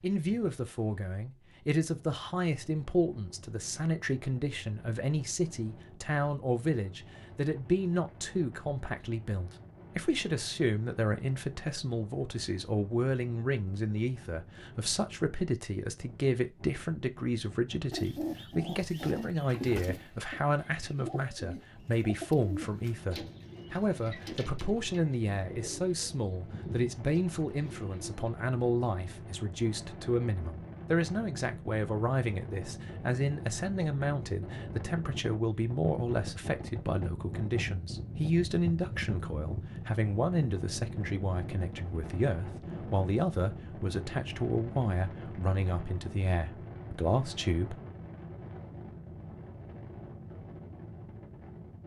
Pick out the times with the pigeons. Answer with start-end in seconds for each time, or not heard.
17.9-28.2.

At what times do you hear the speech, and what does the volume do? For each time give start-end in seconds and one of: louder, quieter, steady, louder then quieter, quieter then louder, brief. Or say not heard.
0.0-47.8 steady.